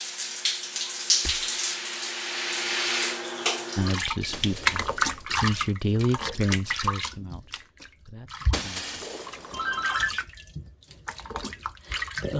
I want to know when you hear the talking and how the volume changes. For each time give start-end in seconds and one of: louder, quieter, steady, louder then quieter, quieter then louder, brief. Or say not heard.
3.8-8.9 louder then quieter.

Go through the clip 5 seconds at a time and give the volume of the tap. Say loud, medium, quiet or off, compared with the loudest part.
loud, loud, medium.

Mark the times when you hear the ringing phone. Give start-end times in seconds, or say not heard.
9.5-10.2.